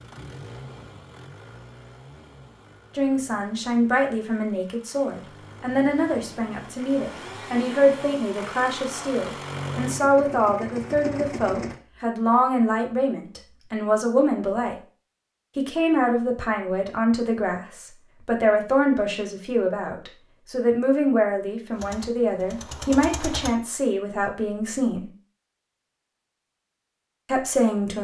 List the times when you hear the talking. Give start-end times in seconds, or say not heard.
3.0-14.8, 15.6-25.1, 27.2-27.9.